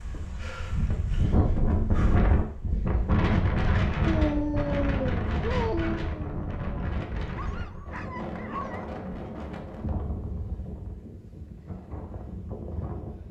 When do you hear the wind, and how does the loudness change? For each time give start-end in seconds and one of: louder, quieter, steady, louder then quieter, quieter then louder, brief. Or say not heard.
0.0-13.2 quieter.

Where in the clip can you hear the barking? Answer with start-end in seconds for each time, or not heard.
4.0-8.8.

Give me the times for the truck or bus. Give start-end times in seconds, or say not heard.
not heard.